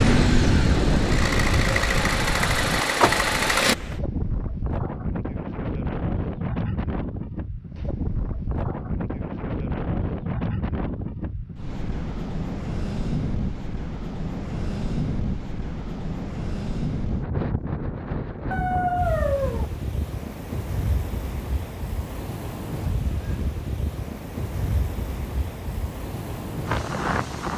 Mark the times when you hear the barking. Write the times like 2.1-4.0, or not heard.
18.5-19.6.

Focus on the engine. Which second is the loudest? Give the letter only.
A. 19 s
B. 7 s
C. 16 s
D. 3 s
D.